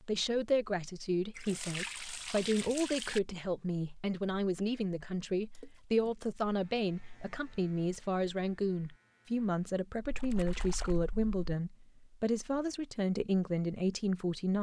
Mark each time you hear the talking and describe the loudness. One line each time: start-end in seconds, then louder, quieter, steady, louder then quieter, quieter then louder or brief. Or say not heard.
0.0-14.5 steady.